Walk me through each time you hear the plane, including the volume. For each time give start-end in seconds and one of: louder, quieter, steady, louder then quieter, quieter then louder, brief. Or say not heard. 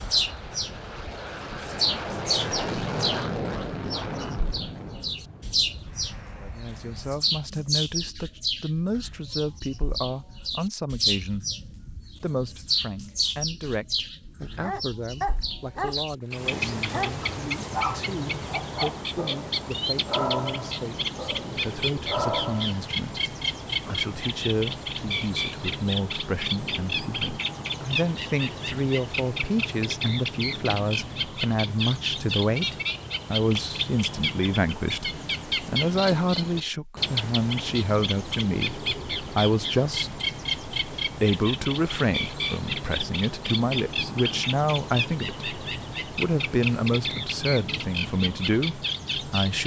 0.0-7.2 louder then quieter.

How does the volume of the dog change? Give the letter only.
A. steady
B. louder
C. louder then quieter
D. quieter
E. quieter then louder
E.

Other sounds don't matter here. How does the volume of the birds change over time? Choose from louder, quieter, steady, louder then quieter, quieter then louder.
steady.